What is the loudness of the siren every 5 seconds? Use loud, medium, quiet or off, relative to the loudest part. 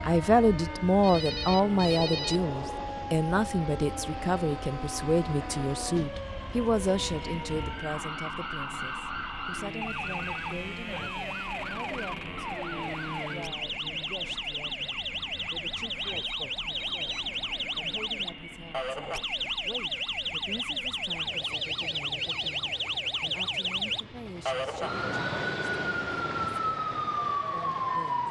medium, medium, medium, loud, loud, loud.